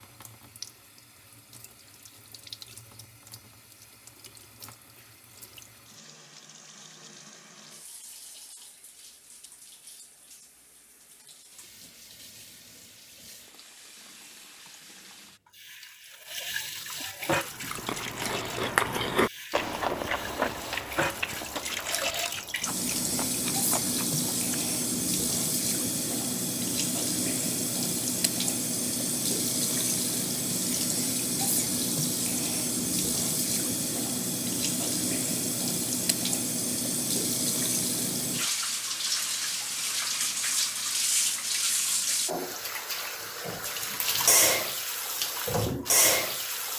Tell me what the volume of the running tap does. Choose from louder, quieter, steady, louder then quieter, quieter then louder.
louder.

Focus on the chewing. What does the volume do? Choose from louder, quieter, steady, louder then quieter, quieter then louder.
louder then quieter.